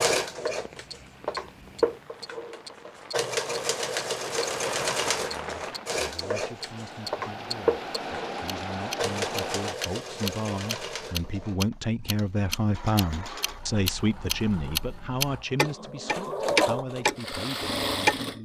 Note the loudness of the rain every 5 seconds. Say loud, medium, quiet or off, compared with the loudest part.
medium, loud, off, off.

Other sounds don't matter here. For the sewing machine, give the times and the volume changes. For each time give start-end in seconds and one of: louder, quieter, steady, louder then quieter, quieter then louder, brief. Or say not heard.
0.0-18.4 quieter then louder.